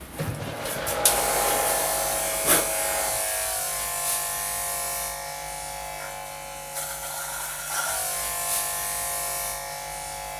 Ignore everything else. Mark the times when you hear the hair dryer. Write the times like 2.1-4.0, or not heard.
0.0-3.2.